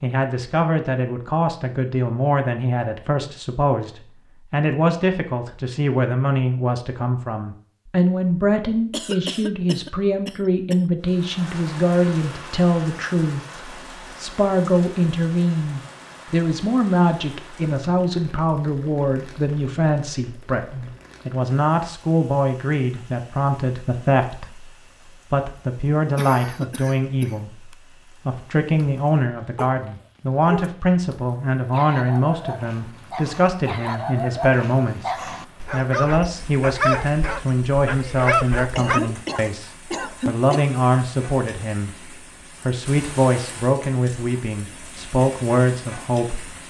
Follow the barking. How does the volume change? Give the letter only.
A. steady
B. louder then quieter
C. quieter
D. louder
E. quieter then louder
D.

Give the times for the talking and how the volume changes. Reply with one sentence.
You can hear the talking from 0.0 to 46.6 s, at a steady volume.